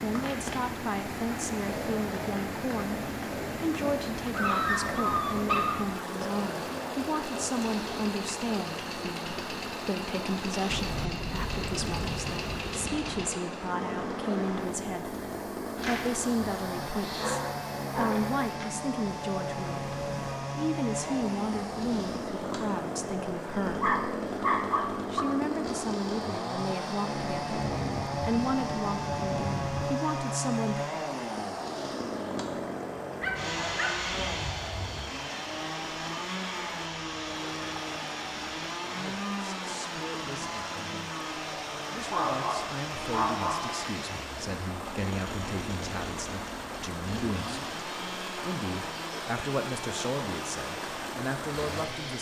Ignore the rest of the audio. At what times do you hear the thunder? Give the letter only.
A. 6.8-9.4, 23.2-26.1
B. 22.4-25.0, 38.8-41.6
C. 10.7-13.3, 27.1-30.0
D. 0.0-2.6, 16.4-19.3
C.